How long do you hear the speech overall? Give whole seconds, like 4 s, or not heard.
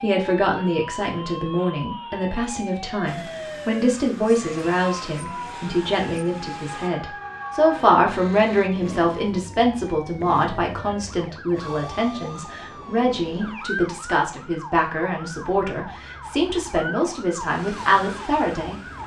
19 s.